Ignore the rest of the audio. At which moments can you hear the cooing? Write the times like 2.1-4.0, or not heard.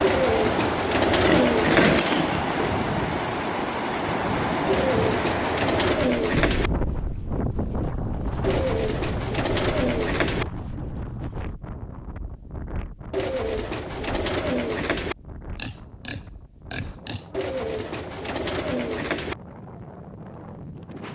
0.0-2.0, 4.7-6.7, 8.4-10.4, 13.1-15.2, 17.3-19.4.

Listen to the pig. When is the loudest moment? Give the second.
2 s.